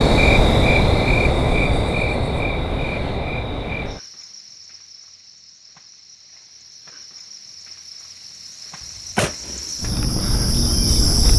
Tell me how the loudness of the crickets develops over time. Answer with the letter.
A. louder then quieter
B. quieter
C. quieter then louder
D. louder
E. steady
C.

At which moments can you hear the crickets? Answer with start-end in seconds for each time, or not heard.
0.0-11.3.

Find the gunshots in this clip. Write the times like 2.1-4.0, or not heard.
8.8-9.8.